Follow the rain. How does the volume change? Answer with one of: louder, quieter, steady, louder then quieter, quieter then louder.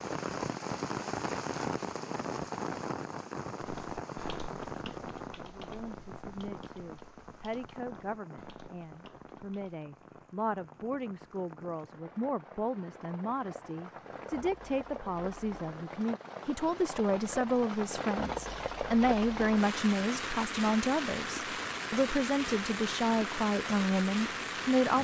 quieter then louder.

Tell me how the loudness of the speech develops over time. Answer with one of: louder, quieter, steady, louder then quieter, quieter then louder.
louder.